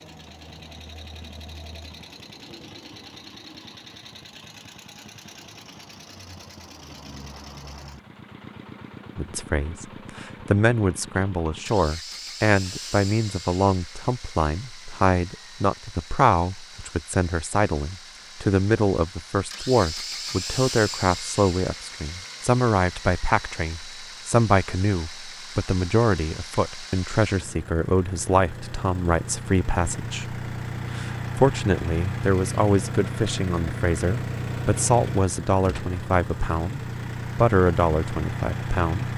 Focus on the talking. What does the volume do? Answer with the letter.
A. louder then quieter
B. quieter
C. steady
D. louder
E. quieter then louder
C.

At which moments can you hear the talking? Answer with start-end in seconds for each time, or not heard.
9.2-39.1.